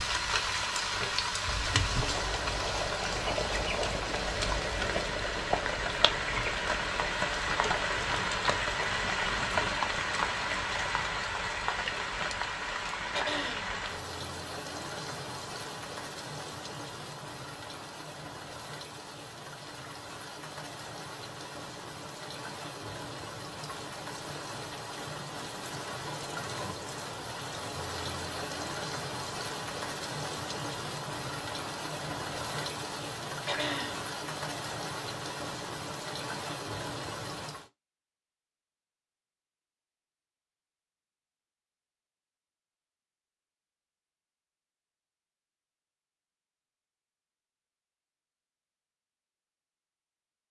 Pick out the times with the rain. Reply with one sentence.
The rain can be heard from 0.0 to 37.7 s.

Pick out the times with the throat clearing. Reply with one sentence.
You can hear the throat clearing from 13.1 to 13.8 s and from 33.5 to 34.0 s.